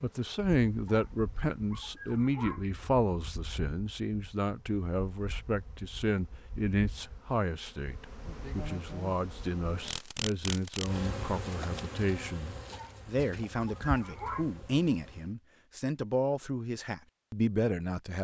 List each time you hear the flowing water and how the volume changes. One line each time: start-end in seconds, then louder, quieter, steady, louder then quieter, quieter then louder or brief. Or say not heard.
not heard.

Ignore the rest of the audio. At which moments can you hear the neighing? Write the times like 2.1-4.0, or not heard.
not heard.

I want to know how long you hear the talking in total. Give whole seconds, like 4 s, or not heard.
18 s.